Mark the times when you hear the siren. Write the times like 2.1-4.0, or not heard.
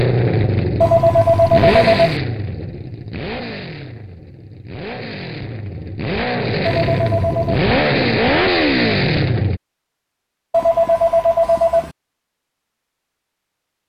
not heard.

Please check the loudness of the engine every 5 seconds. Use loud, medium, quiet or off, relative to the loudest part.
loud, loud, off.